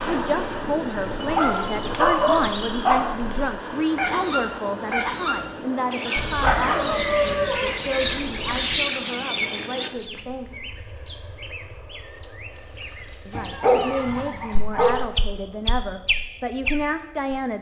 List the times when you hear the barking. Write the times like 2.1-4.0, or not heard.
1.2-3.0, 6.2-8.8, 13.3-14.9.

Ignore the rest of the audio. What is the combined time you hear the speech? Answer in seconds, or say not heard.
15 s.